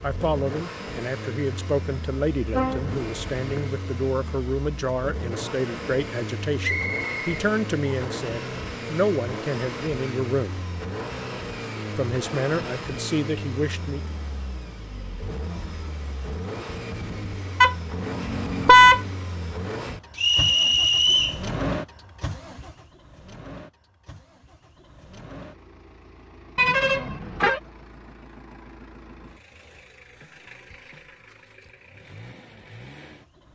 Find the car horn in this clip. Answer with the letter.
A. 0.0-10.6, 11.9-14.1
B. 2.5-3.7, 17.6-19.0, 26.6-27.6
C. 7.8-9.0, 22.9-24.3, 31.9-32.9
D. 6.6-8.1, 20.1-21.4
B.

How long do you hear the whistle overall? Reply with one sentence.
The whistle can be heard for 3 seconds in total.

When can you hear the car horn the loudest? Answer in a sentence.
The loudest moment of the car horn is at 19 seconds.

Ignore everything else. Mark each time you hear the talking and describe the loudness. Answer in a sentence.
The talking can be heard from 0.0 to 10.6 s, at a steady volume; and briefly from 11.9 to 14.1 s.